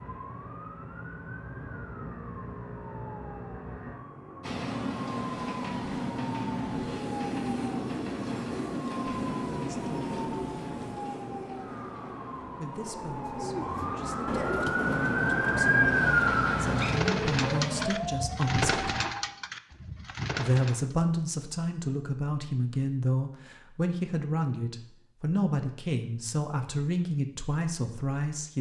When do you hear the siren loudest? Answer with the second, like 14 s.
16 s.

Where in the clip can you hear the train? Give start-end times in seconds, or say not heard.
4.4-17.9.